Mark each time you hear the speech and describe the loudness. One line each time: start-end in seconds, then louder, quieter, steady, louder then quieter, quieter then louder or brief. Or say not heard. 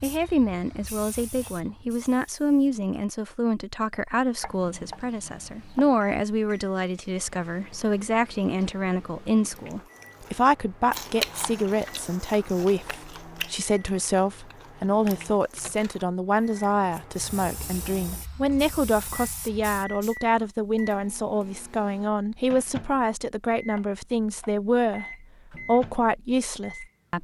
0.0-27.1 steady.